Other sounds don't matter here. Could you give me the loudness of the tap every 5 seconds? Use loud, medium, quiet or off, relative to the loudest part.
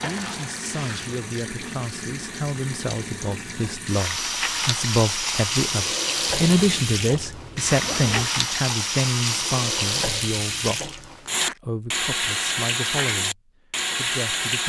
medium, loud, loud.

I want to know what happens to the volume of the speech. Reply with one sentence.
The loudness of the speech goes up, then down.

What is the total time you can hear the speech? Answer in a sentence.
The speech can be heard for 14 seconds in total.